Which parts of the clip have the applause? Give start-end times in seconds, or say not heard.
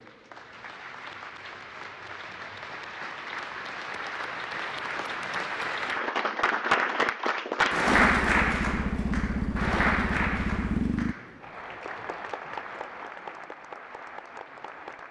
0.0-15.0.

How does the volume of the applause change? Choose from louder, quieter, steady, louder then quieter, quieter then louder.
louder then quieter.